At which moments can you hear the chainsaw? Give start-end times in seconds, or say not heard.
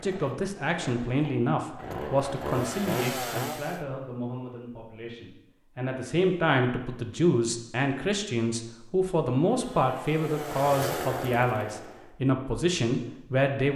0.0-3.8, 9.4-12.2.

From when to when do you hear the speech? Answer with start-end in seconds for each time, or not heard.
0.0-13.7.